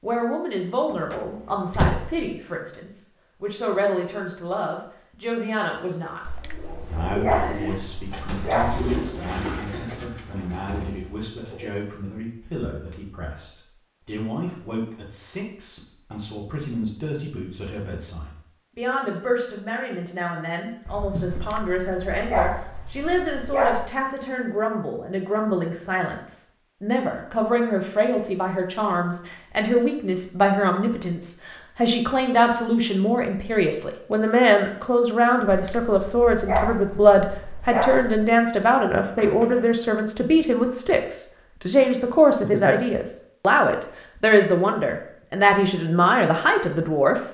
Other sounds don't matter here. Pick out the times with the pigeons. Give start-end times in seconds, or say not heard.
6.4-11.8.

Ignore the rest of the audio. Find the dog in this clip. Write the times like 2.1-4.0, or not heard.
6.2-8.9, 21.3-23.9, 35.5-38.3.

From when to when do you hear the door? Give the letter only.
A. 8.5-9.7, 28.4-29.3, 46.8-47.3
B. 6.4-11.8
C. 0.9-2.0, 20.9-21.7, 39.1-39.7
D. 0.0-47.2
C.